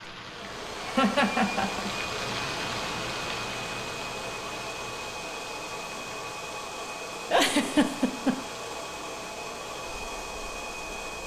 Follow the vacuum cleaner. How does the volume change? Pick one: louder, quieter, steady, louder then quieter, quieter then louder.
steady.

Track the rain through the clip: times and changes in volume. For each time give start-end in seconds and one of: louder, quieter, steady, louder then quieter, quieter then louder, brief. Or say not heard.
0.0-11.2 quieter.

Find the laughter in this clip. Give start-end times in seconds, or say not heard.
0.4-1.9, 7.3-8.4.